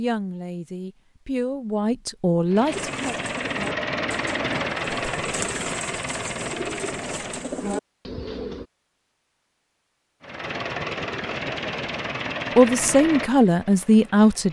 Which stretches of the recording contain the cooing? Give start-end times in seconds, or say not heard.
2.7-8.7.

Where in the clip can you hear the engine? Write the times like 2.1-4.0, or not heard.
2.5-7.5, 10.2-14.4.